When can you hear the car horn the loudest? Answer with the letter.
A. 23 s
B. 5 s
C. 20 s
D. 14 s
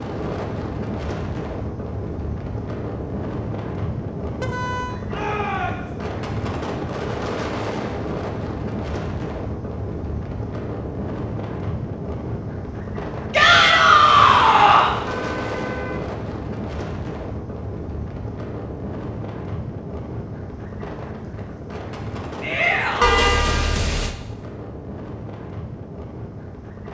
A.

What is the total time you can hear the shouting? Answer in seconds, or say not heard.
3 s.